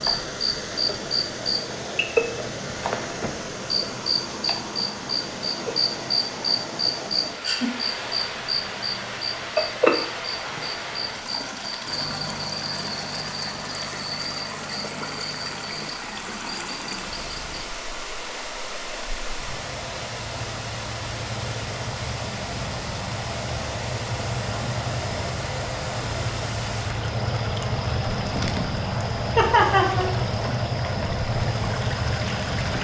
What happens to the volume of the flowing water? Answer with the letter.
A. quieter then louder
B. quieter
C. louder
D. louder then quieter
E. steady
E.